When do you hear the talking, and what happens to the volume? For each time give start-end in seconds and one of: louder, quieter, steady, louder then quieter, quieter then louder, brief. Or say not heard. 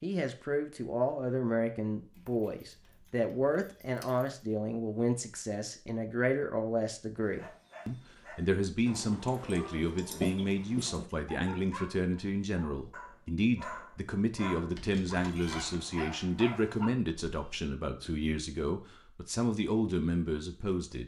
0.0-21.0 steady.